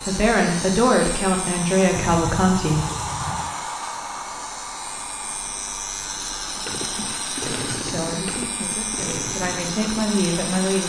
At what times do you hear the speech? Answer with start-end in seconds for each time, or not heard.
0.1-2.9, 7.8-10.8.